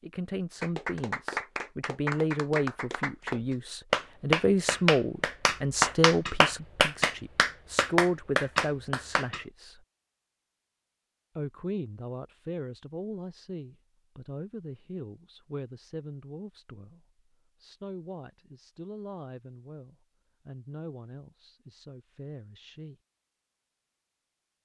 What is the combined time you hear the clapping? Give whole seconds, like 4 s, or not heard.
9 s.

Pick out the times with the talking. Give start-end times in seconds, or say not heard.
0.0-9.8, 11.3-22.9.